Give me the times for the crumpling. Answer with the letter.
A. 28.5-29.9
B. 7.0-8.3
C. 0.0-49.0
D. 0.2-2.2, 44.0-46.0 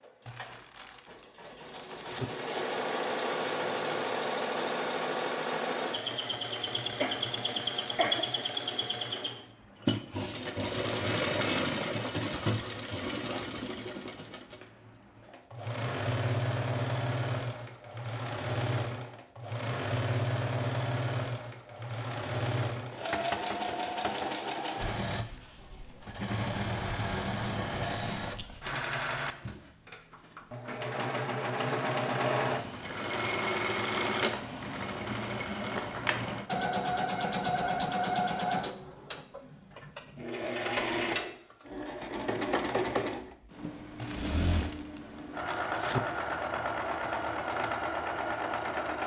D.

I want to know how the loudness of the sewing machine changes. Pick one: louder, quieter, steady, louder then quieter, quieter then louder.
steady.